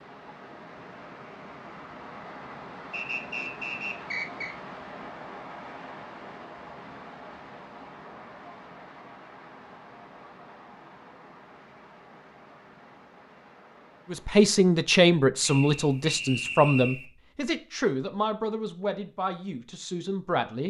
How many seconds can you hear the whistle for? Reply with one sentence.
The whistle can be heard for 3 seconds in total.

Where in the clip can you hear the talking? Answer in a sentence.
You can hear the talking from 14.1 to 20.6 s.